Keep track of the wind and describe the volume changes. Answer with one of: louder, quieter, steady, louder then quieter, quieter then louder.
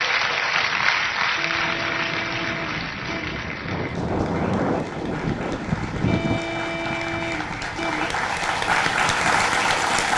louder then quieter.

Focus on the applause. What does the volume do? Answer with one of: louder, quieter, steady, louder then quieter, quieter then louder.
quieter then louder.